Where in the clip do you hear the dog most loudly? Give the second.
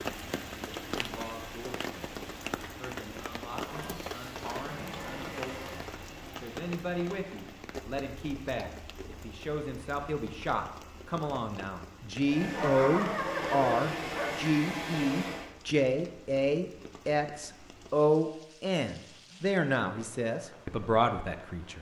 13 s.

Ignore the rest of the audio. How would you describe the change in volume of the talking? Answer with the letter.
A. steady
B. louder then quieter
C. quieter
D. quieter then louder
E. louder
E.